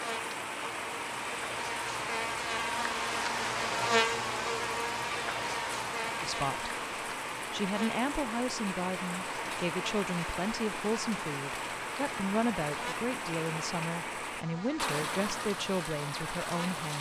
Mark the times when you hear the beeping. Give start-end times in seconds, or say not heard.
not heard.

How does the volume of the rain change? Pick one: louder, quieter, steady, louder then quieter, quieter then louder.
steady.